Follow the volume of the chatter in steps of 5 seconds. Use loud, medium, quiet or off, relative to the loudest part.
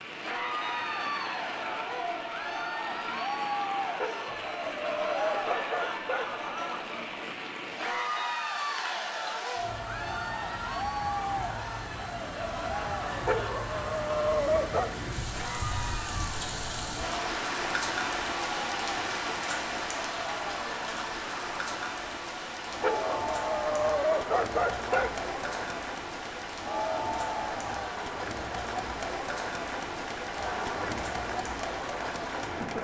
loud, loud, loud, medium, loud, loud, loud.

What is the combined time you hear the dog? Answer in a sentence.
You can hear the dog for 7 seconds altogether.